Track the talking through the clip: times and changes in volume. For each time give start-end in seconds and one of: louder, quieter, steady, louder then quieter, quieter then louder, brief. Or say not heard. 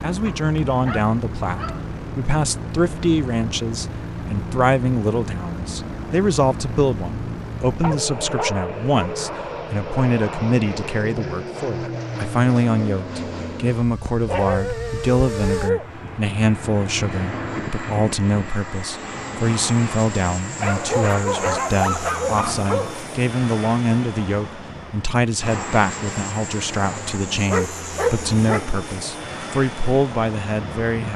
0.0-31.1 steady.